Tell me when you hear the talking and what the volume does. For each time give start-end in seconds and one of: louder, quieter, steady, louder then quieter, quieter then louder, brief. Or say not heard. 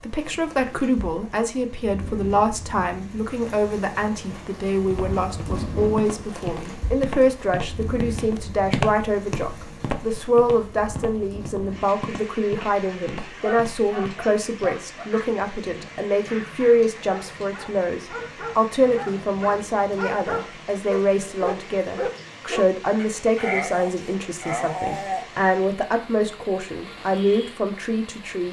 0.0-28.4 steady.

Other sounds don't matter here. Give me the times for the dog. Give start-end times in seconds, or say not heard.
13.4-25.2.